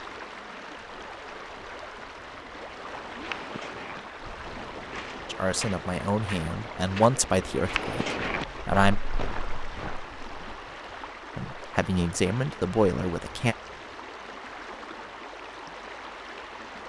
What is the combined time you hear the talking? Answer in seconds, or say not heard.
6 s.